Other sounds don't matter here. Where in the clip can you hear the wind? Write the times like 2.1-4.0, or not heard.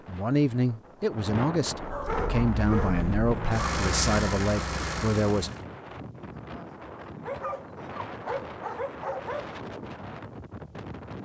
0.0-11.1.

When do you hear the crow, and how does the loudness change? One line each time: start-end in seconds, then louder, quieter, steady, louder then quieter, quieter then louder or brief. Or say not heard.
not heard.